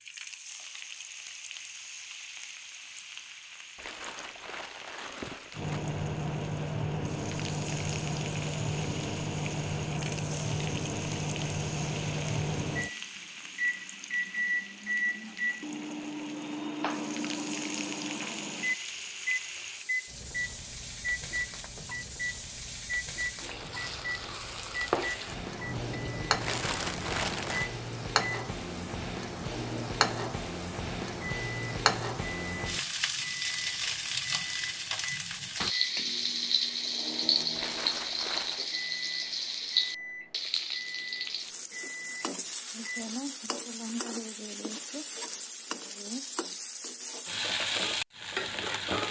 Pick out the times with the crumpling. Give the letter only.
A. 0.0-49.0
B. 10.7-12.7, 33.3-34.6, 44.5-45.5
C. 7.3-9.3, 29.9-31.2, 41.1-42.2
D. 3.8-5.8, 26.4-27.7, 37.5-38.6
D.